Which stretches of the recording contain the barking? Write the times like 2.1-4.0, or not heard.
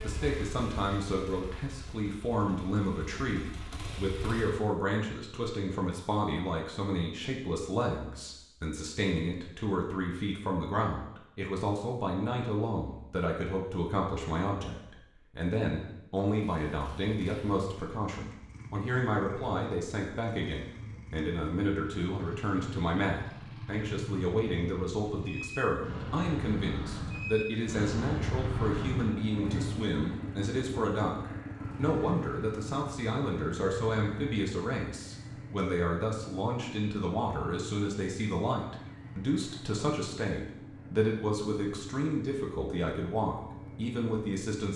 not heard.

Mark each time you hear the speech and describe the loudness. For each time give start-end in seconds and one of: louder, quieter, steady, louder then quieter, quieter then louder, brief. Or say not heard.
0.0-44.7 steady.